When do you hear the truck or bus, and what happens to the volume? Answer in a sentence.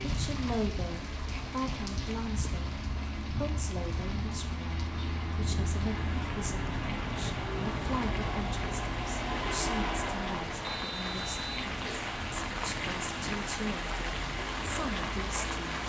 The truck or bus can be heard from 0.1 to 15.8 s, getting louder then quieter.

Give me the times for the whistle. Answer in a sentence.
You can hear the whistle from 10.6 to 11.6 s.